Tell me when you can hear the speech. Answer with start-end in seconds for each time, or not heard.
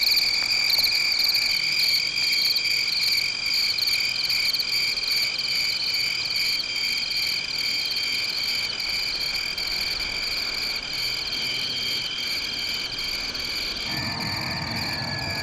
not heard.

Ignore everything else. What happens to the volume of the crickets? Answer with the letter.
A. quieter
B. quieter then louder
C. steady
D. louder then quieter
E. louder
A.